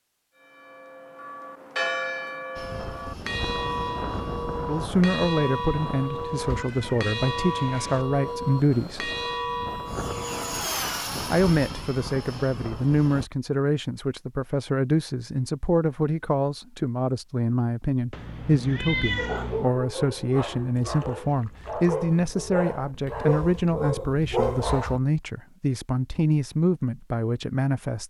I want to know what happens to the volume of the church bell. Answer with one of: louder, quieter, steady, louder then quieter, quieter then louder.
steady.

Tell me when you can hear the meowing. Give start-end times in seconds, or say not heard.
6.1-8.1, 18.1-19.7.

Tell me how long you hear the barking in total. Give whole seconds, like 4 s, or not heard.
6 s.